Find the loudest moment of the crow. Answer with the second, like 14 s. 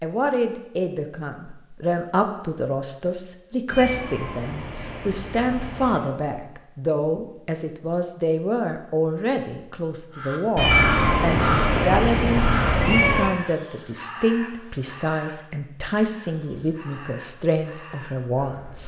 12 s.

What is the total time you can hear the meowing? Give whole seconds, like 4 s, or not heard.
5 s.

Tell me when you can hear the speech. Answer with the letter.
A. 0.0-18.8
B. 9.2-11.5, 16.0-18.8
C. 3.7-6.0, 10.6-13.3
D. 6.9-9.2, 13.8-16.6
A.